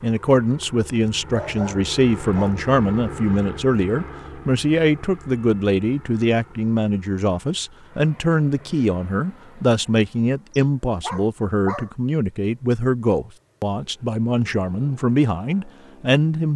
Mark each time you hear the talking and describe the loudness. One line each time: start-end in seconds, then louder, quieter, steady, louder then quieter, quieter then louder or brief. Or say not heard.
0.0-16.5 steady.